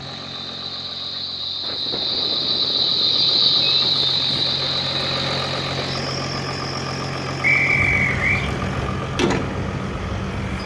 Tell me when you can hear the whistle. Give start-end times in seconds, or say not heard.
7.4-8.4.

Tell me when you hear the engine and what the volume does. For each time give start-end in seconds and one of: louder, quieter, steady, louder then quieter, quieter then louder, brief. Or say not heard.
0.0-10.6 louder.